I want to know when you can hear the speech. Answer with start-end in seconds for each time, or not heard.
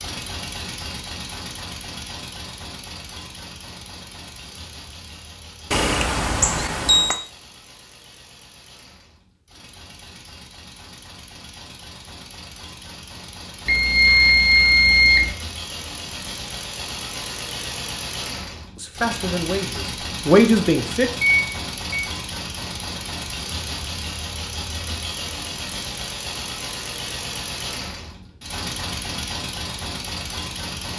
18.8-21.1.